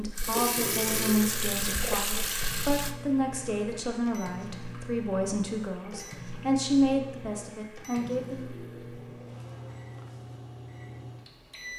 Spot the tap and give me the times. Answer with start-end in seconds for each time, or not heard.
0.0-9.3.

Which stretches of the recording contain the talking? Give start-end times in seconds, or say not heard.
0.0-8.4.